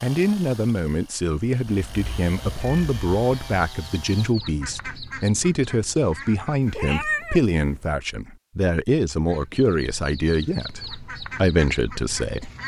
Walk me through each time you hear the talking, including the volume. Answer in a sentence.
The talking can be heard from 0.0 to 12.5 s, at a steady volume.